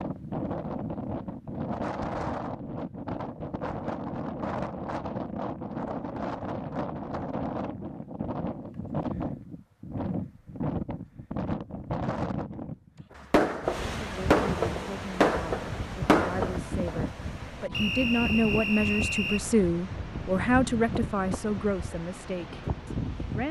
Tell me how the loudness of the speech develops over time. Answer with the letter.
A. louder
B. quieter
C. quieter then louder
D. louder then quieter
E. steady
D.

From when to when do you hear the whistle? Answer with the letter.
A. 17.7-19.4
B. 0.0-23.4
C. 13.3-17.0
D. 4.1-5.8
A.